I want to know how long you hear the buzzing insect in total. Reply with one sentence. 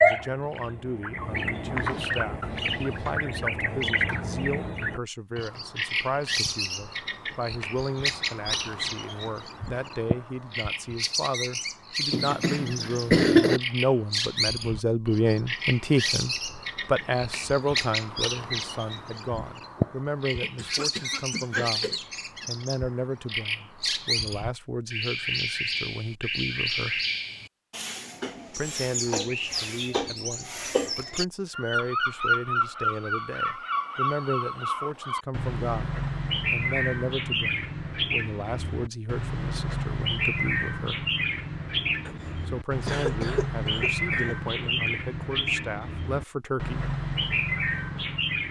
The buzzing insect can't be heard in this clip.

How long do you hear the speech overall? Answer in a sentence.
You can hear the speech for 44 seconds altogether.